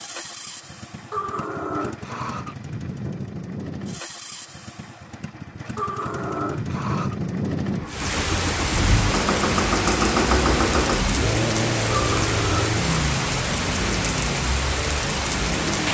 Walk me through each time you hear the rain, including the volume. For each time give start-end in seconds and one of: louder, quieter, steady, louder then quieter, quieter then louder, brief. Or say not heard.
7.8-15.9 steady.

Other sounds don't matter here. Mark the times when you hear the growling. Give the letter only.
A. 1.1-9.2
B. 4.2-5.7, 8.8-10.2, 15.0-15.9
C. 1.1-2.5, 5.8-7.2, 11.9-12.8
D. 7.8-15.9
C.